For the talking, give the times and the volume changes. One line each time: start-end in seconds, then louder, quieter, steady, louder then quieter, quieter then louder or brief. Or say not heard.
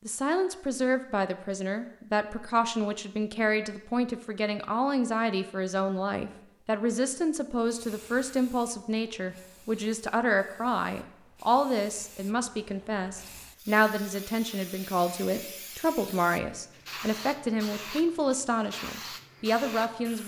0.1-20.2 steady.